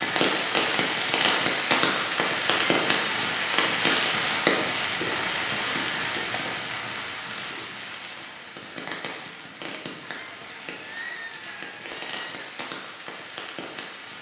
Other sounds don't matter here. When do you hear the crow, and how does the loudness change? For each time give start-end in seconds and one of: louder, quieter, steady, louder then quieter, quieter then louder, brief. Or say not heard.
not heard.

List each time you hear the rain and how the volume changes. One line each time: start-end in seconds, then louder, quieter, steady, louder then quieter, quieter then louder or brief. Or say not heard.
0.0-14.1 quieter.